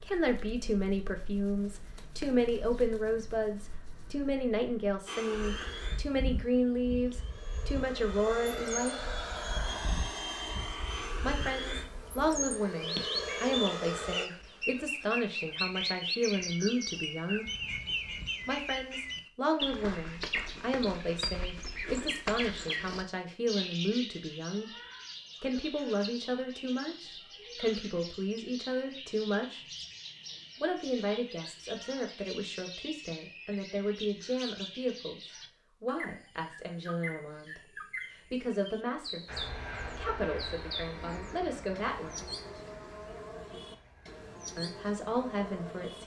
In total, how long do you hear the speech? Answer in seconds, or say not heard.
39 s.